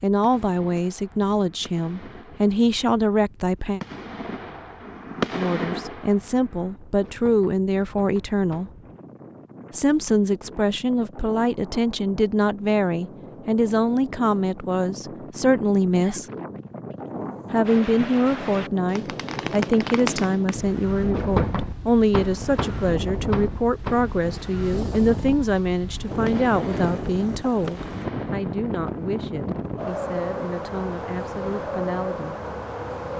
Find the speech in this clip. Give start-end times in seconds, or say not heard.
0.0-3.8, 5.3-8.7, 9.7-16.2, 17.5-32.4.